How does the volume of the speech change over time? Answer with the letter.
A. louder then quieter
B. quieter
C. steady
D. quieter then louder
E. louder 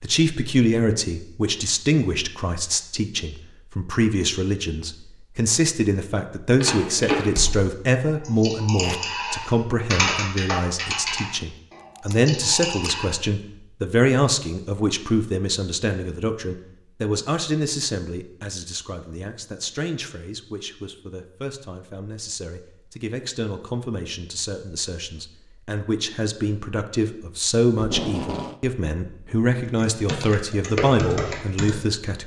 D.